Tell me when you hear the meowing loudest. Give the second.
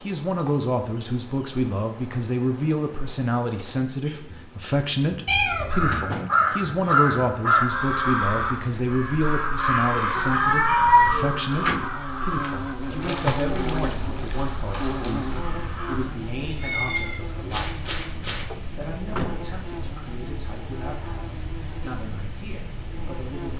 11 s.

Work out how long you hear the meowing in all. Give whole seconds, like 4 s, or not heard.
4 s.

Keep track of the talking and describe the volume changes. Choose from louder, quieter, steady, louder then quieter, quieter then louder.
quieter.